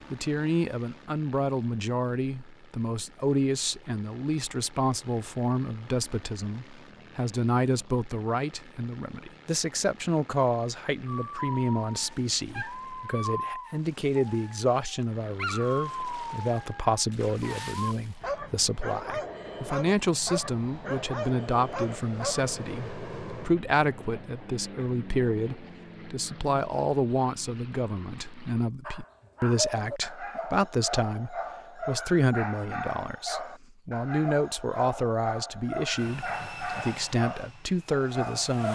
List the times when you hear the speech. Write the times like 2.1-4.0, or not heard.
0.1-38.7.